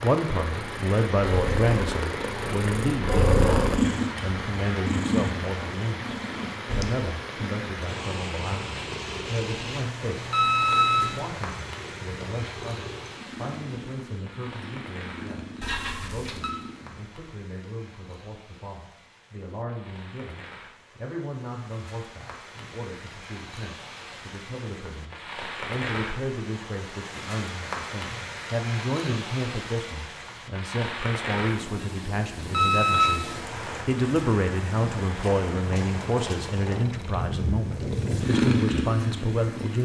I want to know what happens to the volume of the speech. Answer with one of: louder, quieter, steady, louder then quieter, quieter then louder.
quieter then louder.